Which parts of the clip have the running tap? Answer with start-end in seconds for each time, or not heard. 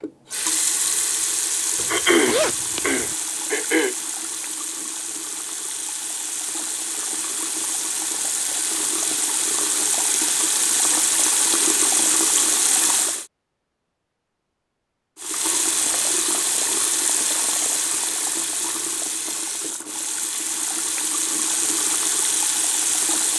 0.0-13.2, 15.2-23.3.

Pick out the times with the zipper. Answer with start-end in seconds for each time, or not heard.
1.8-3.1.